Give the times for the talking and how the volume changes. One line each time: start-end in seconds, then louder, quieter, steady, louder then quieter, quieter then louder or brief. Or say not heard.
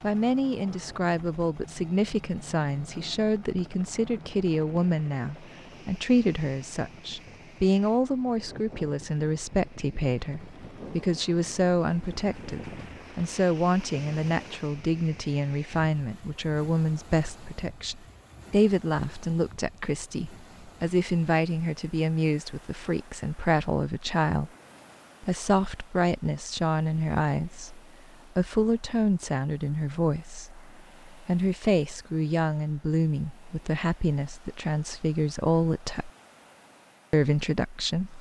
0.0-24.5 steady
25.2-36.1 steady
37.1-38.1 brief.